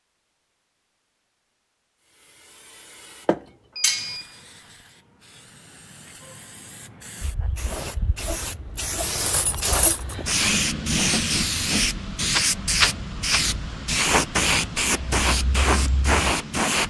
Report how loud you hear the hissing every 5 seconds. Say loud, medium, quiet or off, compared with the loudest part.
quiet, medium, loud, loud.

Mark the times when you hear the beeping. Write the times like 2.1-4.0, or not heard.
3.8-4.5.